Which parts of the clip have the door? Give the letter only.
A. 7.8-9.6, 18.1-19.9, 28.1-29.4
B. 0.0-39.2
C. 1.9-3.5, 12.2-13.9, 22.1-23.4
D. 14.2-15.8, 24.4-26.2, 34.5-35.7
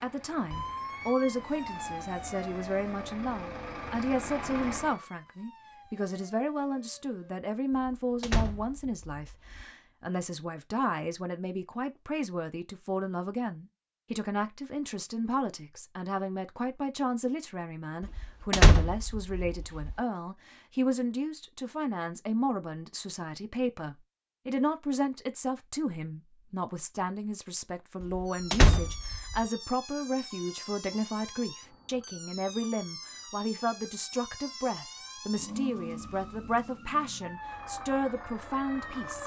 A.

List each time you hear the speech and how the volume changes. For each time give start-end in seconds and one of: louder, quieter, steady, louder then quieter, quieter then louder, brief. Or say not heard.
0.0-39.2 steady.